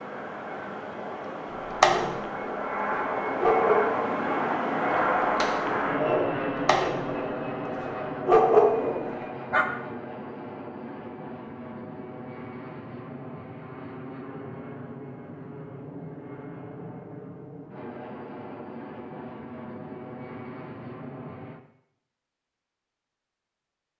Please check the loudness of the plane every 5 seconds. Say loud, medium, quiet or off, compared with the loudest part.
loud, loud, medium, medium, medium.